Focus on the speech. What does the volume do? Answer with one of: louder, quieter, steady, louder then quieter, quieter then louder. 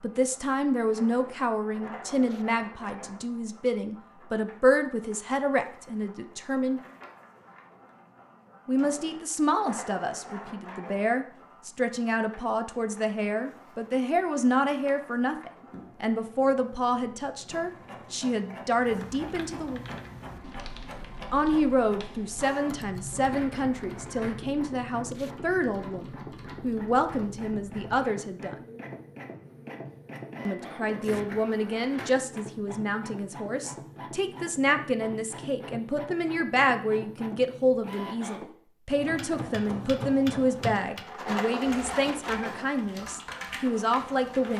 steady.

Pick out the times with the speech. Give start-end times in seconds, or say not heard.
0.0-6.8, 8.7-19.8, 21.3-28.6, 30.4-44.5.